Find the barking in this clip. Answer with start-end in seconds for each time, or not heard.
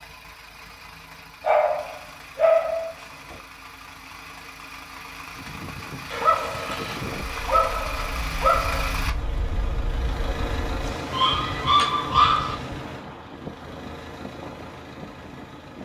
1.4-3.4, 6.1-8.9, 11.1-12.6.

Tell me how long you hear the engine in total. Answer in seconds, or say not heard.
16 s.